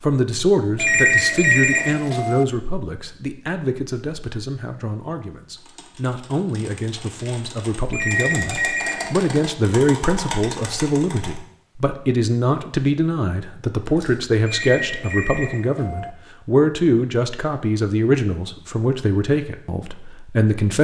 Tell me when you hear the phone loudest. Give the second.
1 s.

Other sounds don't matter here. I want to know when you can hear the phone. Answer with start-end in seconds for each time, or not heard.
0.8-2.5, 7.9-9.3, 14.4-16.1.